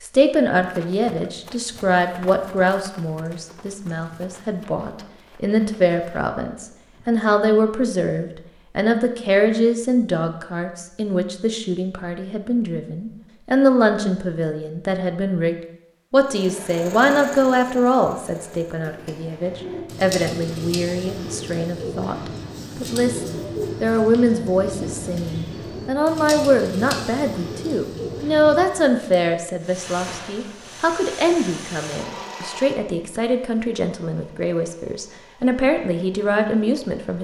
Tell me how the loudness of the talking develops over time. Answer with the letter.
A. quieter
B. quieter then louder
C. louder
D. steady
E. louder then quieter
D.